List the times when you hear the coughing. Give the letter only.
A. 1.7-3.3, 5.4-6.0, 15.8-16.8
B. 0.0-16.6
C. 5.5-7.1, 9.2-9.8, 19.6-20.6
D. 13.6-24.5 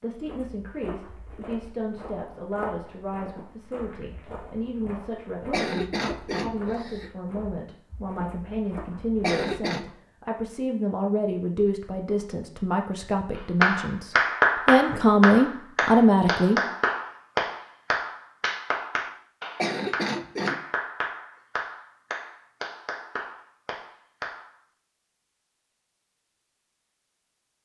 C.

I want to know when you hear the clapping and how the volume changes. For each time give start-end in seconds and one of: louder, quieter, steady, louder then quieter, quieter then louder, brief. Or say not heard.
13.6-24.5 quieter.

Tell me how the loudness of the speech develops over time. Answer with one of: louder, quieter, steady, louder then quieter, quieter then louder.
louder.